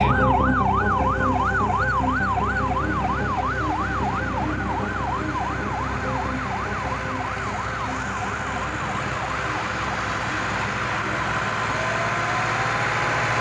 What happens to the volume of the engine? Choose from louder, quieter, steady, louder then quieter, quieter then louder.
louder.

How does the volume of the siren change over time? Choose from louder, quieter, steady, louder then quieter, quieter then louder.
quieter.